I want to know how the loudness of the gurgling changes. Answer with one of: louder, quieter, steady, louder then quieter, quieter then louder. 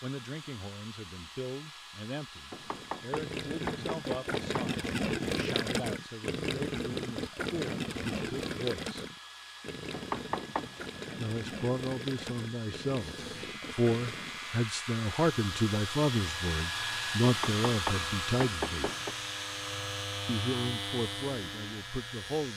quieter.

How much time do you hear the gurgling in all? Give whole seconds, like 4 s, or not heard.
12 s.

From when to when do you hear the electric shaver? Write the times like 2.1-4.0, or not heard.
12.9-22.5.